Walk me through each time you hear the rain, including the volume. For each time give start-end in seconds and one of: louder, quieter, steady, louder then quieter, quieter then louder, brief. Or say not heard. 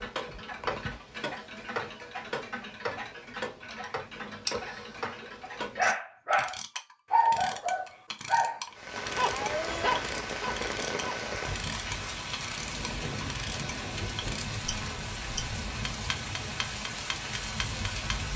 8.7-18.3 steady.